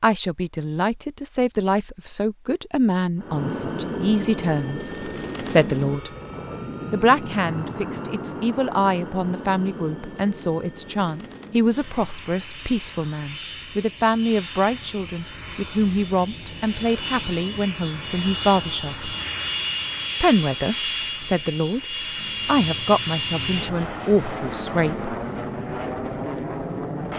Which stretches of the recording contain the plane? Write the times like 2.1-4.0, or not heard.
3.1-27.1.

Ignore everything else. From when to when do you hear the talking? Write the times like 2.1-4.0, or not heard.
0.0-6.1, 6.9-19.1, 20.2-25.1.